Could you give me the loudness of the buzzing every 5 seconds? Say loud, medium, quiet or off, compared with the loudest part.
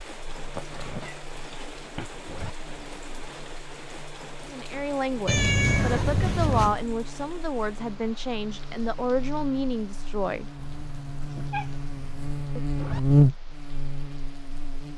quiet, quiet, loud.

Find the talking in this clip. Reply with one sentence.
The talking can be heard from 4.5 to 10.4 s.